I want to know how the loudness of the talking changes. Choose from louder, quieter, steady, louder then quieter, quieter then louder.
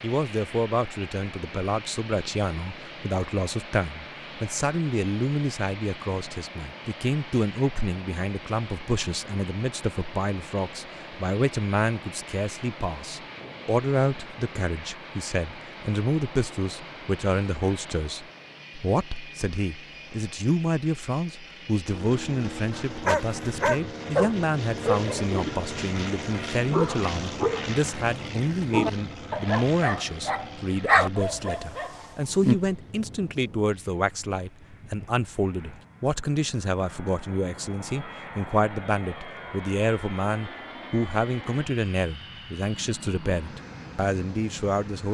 steady.